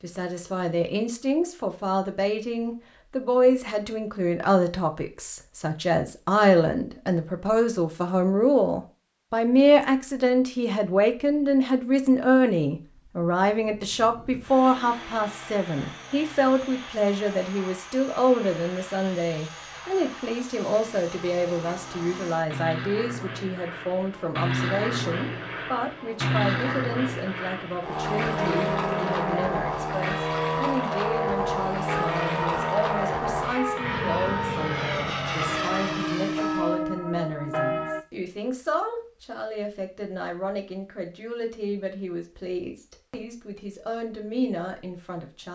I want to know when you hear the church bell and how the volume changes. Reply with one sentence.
You can hear the church bell from 28.4 to 38.0 s, at a steady volume.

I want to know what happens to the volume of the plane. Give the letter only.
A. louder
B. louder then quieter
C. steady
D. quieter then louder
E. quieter
A.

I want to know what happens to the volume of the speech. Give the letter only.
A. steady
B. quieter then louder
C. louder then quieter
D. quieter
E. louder
D.